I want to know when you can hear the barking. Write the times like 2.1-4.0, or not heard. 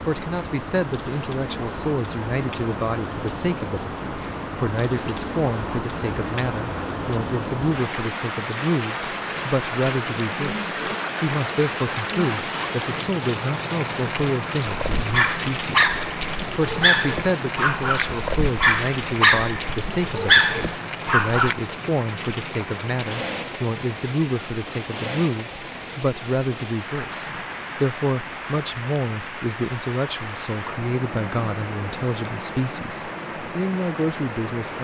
14.7-21.6.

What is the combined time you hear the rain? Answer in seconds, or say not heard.
35 s.